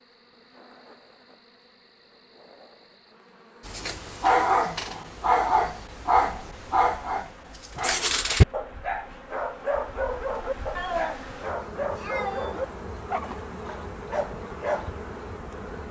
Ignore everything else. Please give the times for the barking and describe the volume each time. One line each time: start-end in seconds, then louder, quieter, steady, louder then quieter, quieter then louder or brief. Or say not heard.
3.6-14.9 quieter.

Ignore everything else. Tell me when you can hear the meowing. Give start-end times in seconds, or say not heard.
10.8-12.7.